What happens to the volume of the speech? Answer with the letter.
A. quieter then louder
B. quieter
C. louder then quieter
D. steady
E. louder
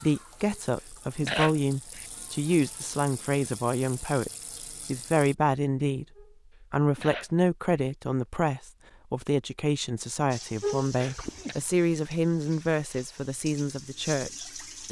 D.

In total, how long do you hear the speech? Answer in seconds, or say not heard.
14 s.